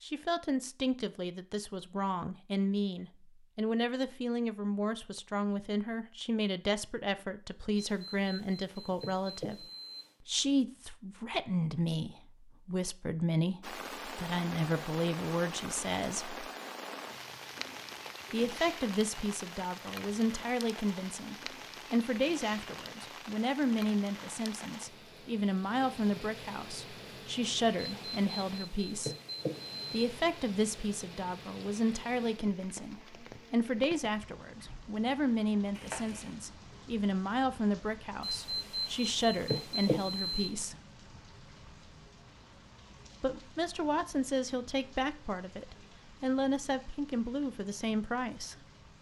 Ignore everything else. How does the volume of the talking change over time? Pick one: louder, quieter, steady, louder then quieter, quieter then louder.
steady.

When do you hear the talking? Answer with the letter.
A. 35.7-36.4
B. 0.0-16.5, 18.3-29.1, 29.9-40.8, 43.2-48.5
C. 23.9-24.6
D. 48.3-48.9
B.